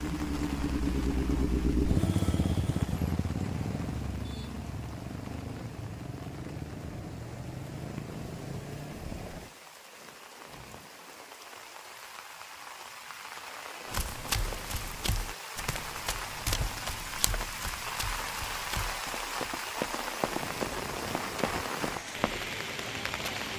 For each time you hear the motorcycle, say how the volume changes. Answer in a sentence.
You can hear the motorcycle from 0.0 to 9.6 s, getting quieter.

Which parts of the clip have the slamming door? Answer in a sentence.
The slamming door can't be heard in this clip.